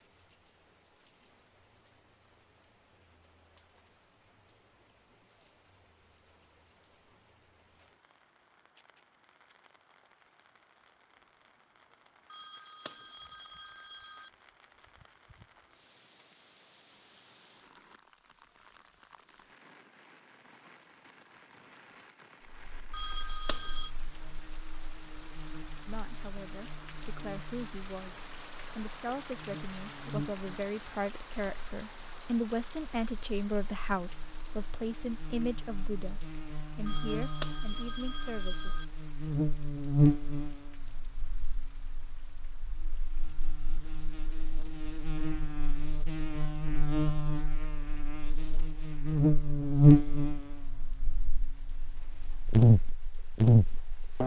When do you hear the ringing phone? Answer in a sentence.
You can hear the ringing phone from 12.2 to 14.3 s, from 22.9 to 23.9 s and from 36.9 to 38.9 s.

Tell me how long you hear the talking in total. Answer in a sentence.
The talking can be heard for 13 seconds in total.